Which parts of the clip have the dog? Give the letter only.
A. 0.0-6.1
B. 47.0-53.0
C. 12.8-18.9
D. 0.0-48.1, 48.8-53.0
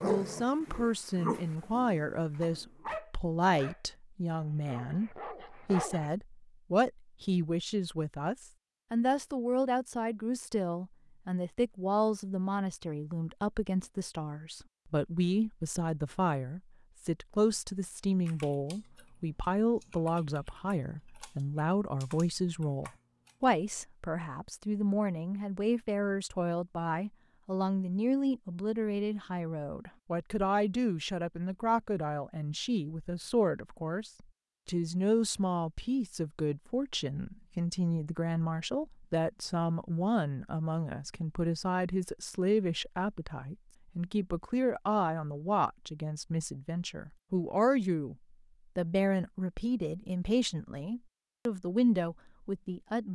A.